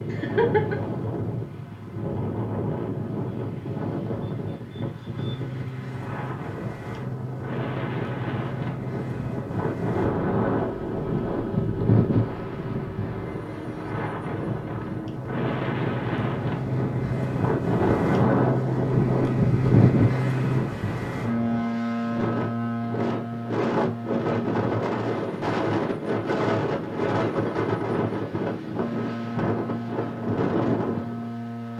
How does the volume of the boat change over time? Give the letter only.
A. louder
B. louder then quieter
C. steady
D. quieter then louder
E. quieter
B.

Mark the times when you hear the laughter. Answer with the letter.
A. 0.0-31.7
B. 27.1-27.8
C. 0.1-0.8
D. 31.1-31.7
C.